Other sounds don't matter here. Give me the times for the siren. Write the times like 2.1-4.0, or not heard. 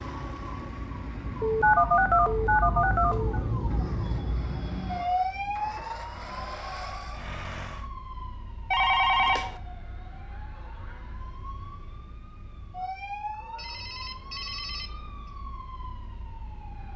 0.0-16.9.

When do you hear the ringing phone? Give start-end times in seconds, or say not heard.
1.4-3.4, 8.7-9.6, 13.6-15.1.